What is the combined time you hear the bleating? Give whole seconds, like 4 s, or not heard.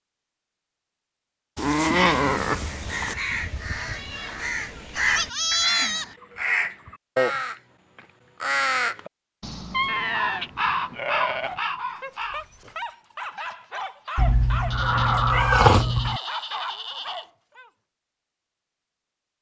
7 s.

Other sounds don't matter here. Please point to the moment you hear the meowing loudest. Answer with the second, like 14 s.
16 s.